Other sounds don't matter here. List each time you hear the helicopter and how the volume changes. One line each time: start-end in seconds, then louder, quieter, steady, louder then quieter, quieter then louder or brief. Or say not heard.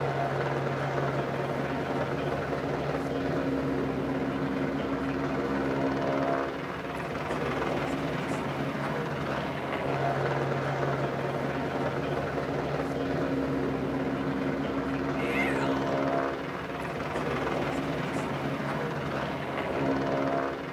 0.0-20.6 steady.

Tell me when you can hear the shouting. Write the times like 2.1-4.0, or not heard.
15.2-15.9.